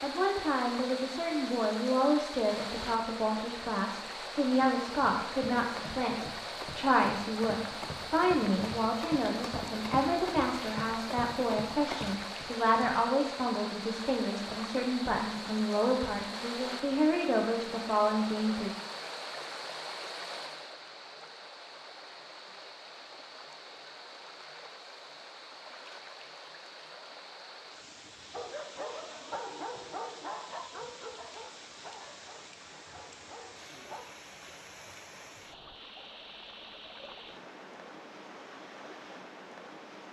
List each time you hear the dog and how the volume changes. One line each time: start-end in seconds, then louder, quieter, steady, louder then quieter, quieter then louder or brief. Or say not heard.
28.3-34.0 quieter.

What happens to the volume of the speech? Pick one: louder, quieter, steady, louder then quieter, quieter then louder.
steady.